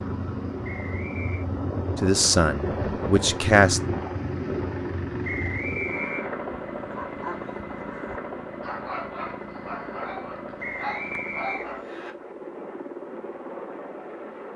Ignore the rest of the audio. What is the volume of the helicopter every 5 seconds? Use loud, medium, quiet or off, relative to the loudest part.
loud, loud, medium.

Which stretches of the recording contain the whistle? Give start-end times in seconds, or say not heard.
0.6-1.4, 5.2-6.3, 10.6-12.2.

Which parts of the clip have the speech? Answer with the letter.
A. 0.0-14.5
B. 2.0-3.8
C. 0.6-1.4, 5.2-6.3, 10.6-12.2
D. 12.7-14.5
B.